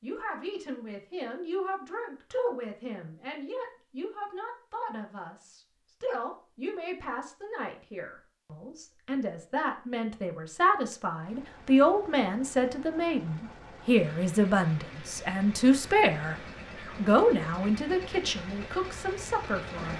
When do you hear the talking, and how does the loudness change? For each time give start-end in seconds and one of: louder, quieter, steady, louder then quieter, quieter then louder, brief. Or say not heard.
0.0-16.4 louder
16.9-19.9 brief.